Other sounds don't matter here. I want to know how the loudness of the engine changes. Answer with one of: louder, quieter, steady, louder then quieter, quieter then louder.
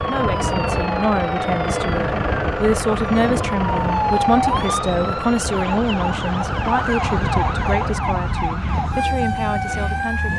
quieter.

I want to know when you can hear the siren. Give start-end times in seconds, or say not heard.
0.0-10.3.